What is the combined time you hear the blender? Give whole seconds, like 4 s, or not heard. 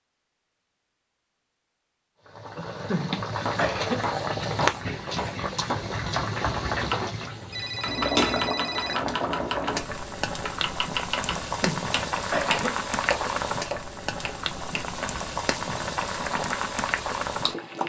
not heard.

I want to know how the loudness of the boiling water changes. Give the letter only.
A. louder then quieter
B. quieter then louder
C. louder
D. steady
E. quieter
D.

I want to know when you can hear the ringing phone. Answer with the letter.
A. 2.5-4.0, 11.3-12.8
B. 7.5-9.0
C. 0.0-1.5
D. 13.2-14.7
B.